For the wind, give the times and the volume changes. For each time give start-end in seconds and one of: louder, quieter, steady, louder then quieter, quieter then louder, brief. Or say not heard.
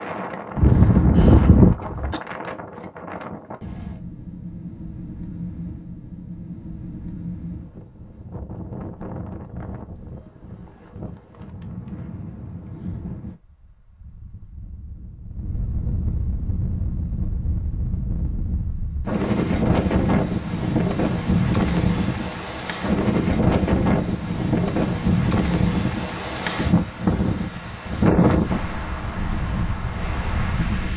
0.0-30.9 louder.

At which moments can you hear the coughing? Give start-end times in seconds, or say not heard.
0.6-2.2.